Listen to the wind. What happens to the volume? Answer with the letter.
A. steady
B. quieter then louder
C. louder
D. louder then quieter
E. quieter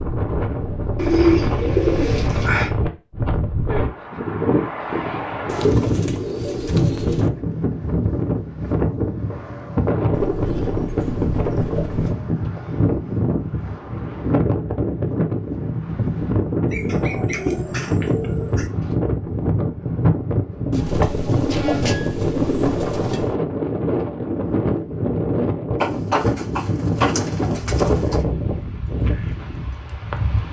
A.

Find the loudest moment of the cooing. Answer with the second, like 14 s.
1 s.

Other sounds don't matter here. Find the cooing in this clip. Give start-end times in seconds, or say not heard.
0.9-2.7, 5.5-7.3, 10.1-12.2, 16.6-18.7, 20.7-23.4, 25.8-28.2.